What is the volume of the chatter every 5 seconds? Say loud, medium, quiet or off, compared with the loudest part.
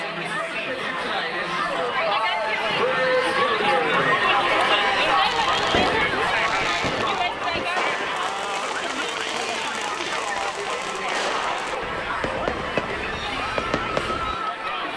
loud, loud, medium.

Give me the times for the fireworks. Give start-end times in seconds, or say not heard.
5.2-14.4.